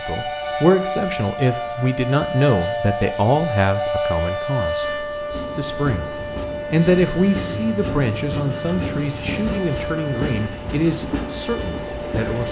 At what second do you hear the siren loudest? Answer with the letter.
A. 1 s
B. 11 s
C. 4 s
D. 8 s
C.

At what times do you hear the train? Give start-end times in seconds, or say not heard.
0.0-12.4.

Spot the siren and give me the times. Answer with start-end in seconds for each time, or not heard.
0.0-12.4.